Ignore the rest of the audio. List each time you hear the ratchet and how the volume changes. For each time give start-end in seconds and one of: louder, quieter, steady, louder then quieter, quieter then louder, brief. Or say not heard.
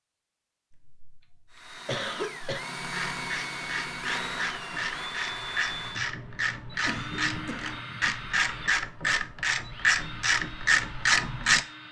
2.8-11.7 louder.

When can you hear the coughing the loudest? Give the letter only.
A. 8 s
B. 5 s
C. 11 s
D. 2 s
D.